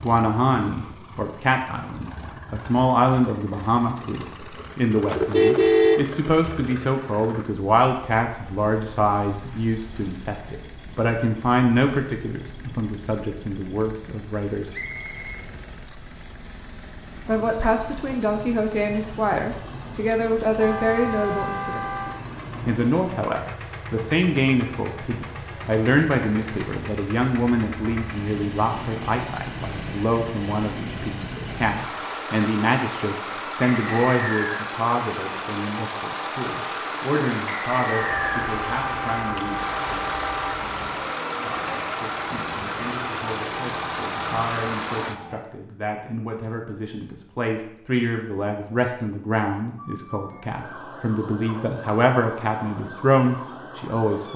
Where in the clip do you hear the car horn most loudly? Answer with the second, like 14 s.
6 s.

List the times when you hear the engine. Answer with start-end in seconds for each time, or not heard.
0.0-45.2.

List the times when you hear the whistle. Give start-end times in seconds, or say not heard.
14.7-15.4, 33.6-34.6, 37.5-38.5.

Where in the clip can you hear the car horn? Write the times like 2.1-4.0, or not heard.
5.1-6.7, 20.6-22.2, 38.1-40.5.